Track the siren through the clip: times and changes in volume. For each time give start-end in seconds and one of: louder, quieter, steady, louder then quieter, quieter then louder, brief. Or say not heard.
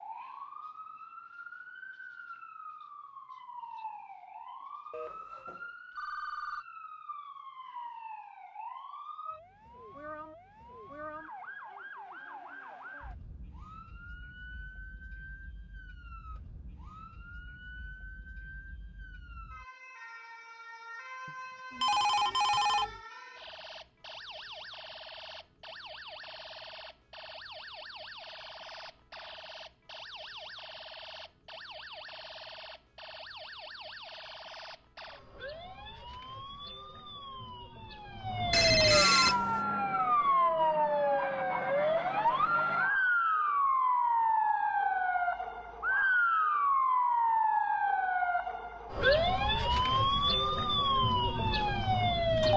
0.0-52.5 louder.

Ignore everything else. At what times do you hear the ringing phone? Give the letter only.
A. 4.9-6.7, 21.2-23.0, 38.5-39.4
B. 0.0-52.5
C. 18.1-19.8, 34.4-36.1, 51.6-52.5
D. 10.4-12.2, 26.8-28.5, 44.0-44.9
A.